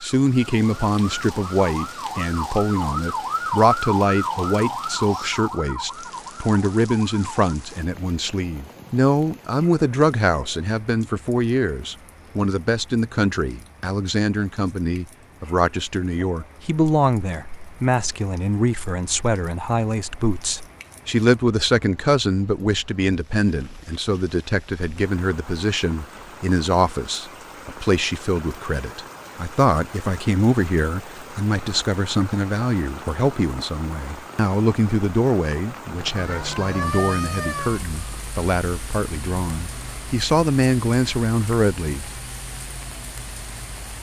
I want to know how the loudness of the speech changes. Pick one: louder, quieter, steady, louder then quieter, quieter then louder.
steady.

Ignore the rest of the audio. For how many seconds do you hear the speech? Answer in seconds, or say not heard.
42 s.